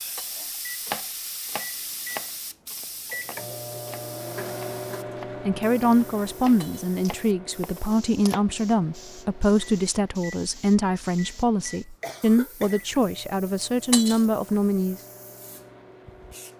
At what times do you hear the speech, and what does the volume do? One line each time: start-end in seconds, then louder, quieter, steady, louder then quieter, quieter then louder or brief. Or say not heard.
5.5-15.0 steady.